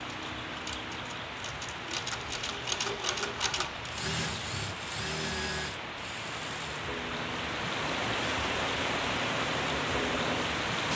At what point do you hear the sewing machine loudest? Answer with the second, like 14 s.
3 s.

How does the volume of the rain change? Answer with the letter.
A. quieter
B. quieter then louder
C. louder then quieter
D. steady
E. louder
E.